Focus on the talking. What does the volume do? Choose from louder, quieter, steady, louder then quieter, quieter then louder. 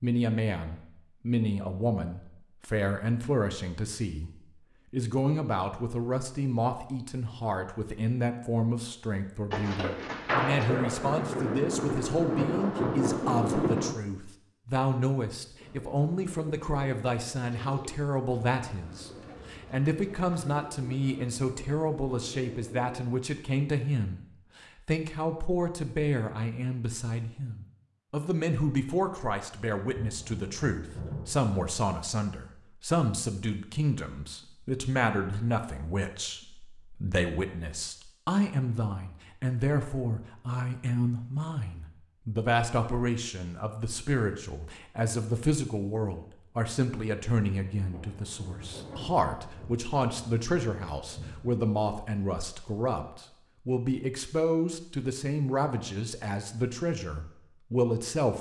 steady.